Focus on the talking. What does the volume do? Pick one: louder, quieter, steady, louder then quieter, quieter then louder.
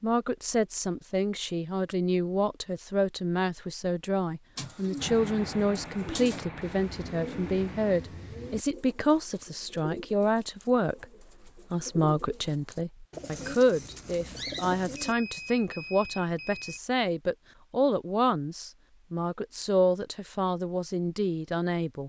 steady.